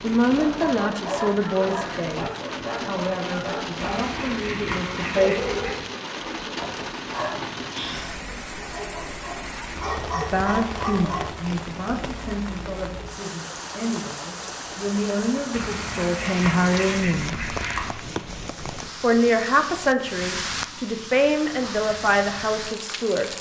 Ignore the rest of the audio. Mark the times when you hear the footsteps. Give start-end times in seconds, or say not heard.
not heard.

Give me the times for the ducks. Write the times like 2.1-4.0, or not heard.
3.8-5.9, 15.5-17.9.